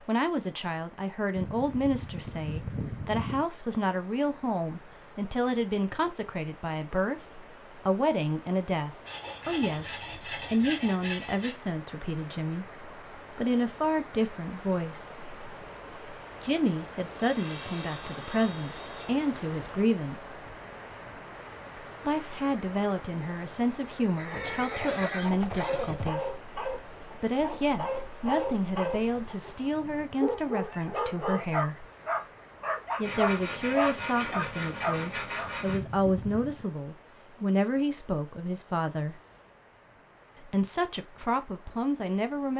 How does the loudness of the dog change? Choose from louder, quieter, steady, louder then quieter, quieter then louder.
louder.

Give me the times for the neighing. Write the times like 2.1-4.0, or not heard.
1.4-3.5, 24.1-26.1, 35.6-36.6.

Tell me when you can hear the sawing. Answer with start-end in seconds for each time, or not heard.
9.1-11.6, 17.2-19.1, 33.0-35.8.